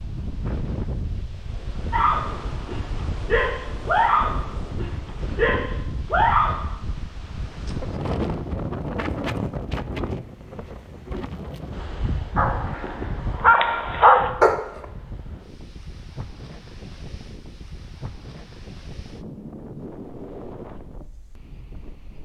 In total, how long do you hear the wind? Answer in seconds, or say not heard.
22 s.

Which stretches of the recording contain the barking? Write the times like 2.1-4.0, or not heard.
1.9-6.7, 12.3-14.6.